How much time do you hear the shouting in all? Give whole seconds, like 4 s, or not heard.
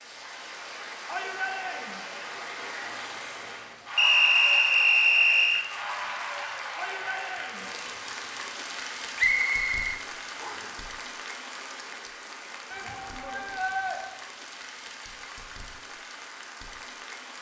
3 s.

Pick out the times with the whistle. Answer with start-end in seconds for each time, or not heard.
4.0-5.7, 9.2-10.7.